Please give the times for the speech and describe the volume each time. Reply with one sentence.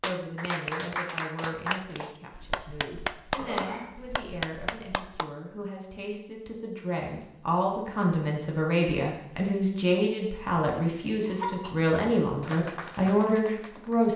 The speech can be heard from 0.0 to 14.1 s, getting louder.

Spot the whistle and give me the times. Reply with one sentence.
You can't hear the whistle here.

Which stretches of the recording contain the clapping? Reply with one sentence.
You can hear the clapping from 0.0 to 5.3 s and from 12.4 to 14.1 s.